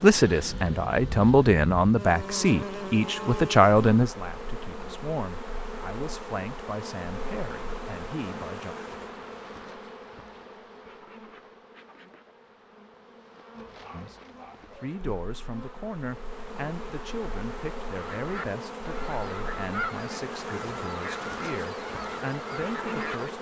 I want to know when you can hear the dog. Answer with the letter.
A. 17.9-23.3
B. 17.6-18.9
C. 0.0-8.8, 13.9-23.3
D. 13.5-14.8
D.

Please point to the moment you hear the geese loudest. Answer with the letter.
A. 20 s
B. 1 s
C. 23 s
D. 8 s
A.